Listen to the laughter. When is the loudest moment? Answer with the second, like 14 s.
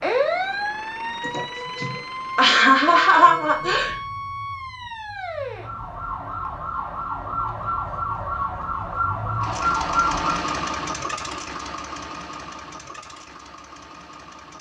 3 s.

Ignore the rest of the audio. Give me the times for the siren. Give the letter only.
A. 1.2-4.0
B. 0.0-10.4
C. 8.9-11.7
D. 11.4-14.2
B.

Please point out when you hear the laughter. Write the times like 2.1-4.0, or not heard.
1.2-4.0.